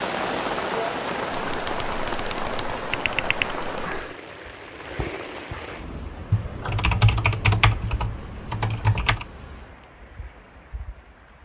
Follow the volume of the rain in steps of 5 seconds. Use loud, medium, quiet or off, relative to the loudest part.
loud, medium, quiet.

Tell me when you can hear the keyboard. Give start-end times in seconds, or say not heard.
1.4-4.0, 6.3-9.2.